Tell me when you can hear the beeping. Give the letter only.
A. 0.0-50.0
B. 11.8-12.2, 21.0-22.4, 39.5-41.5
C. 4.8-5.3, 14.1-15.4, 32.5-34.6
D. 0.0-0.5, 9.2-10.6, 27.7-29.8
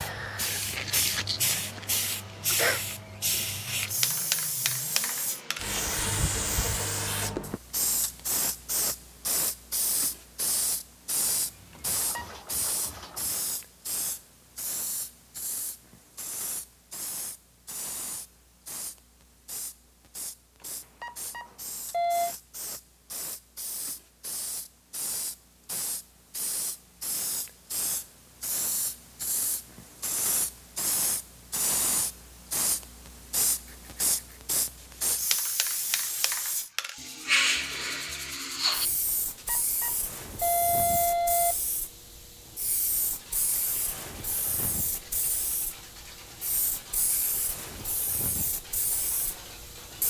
B.